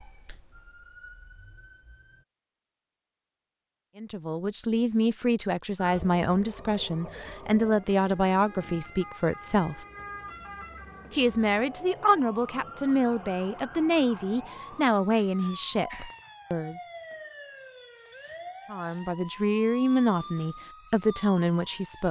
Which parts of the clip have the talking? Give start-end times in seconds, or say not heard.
4.0-9.8, 11.1-16.8, 18.7-22.0.